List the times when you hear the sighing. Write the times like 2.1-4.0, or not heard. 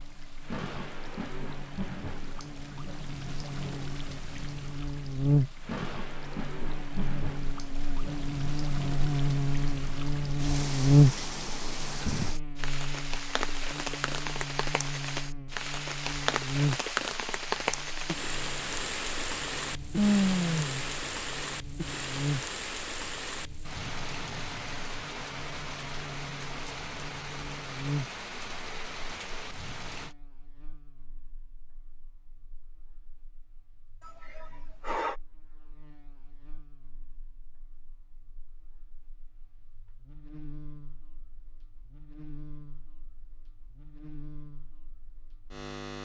19.9-20.9, 34.0-35.1.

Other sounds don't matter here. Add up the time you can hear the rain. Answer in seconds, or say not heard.
30 s.